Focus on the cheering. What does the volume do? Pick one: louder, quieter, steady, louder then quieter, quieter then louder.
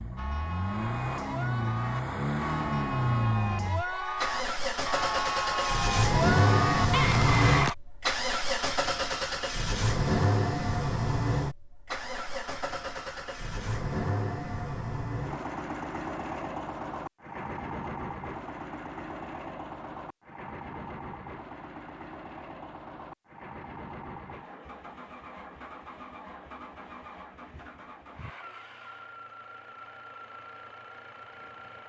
louder.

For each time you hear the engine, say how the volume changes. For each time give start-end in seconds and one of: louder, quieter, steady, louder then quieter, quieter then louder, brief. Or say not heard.
0.0-31.8 quieter.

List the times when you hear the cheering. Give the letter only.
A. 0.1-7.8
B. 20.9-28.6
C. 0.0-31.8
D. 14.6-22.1
A.